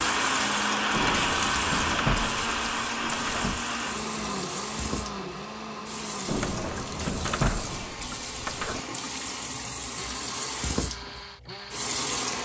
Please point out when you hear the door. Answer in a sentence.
You can hear the door from 0.9 to 3.6 s and from 6.2 to 8.8 s.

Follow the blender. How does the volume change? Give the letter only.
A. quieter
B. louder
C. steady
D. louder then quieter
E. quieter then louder
A.